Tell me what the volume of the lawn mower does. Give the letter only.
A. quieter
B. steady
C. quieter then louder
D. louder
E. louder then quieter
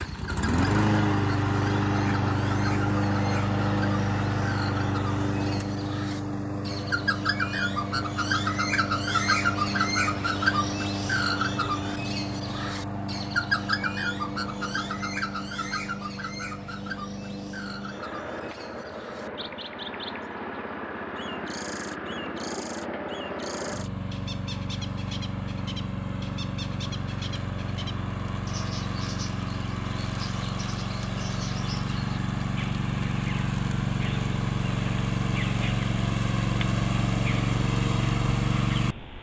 C.